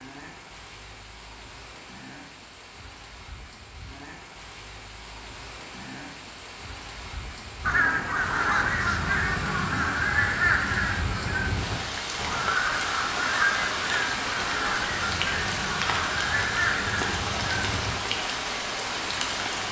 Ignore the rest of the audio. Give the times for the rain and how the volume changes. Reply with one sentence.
The rain can be heard from 0.0 to 19.6 s, getting louder.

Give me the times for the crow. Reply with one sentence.
The crow can be heard from 7.7 to 17.9 s.